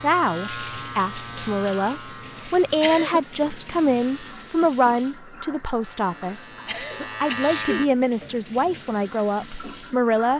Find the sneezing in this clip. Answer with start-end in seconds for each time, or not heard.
2.4-3.2, 6.2-7.8.